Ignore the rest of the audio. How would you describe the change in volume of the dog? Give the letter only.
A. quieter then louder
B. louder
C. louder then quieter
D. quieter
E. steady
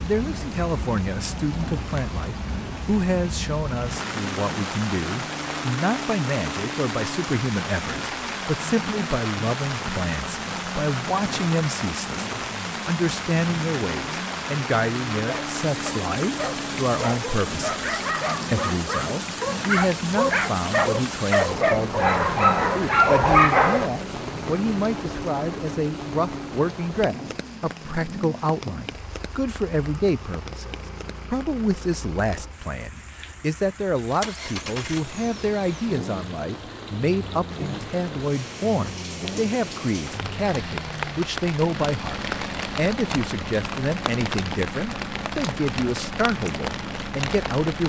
B.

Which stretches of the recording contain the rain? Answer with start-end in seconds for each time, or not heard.
0.0-47.8.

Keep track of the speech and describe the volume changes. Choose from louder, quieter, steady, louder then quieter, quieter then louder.
steady.